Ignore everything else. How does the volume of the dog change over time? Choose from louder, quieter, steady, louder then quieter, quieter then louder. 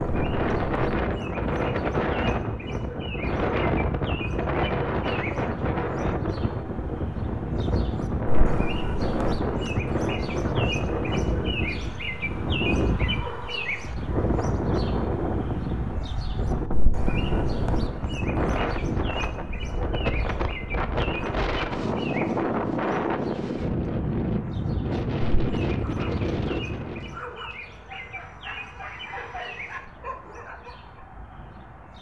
louder.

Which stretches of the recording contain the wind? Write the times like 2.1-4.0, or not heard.
0.0-27.2.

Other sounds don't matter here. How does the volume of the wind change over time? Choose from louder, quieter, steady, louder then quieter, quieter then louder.
steady.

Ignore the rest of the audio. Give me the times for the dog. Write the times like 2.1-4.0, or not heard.
25.8-31.1.